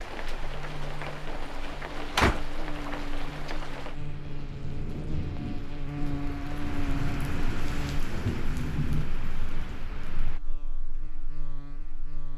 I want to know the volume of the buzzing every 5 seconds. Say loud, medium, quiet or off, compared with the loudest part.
medium, loud, quiet.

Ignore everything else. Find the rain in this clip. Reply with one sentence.
You can hear the rain from 0.0 to 10.4 s.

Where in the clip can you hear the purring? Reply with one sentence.
The purring can't be heard in this clip.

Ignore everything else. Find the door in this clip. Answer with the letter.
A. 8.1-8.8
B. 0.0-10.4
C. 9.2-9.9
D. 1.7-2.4
D.